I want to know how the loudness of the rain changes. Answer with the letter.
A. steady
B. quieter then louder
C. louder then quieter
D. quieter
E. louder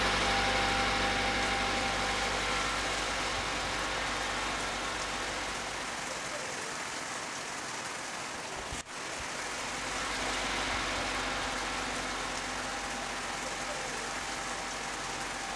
A.